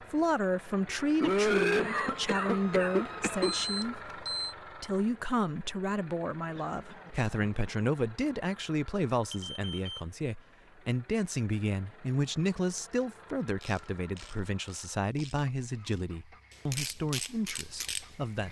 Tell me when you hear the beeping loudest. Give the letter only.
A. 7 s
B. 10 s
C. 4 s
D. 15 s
C.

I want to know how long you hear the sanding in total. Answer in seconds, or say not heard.
not heard.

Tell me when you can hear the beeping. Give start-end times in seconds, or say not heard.
3.5-4.5, 9.3-10.1.